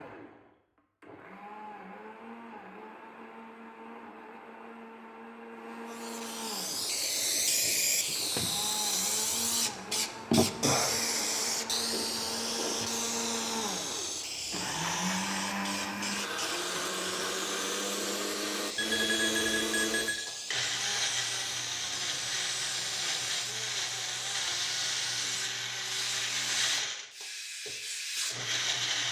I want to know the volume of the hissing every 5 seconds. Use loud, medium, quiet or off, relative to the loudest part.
off, loud, loud, medium, medium, medium.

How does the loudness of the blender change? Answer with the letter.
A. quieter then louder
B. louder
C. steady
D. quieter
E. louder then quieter
B.